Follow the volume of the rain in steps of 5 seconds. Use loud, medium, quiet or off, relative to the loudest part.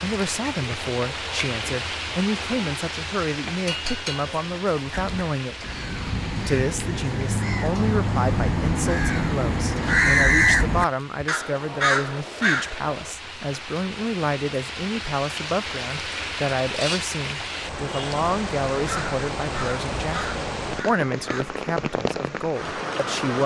loud, medium, medium, loud, loud.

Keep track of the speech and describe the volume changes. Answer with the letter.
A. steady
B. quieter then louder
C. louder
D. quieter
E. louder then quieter
A.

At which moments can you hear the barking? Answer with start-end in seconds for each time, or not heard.
not heard.